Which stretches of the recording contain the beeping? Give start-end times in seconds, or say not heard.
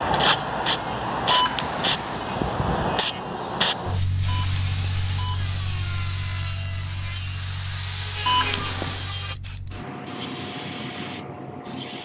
1.3-2.2, 4.2-5.8, 8.2-9.1.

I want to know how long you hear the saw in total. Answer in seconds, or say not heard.
9 s.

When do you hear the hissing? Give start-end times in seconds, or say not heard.
0.0-11.9.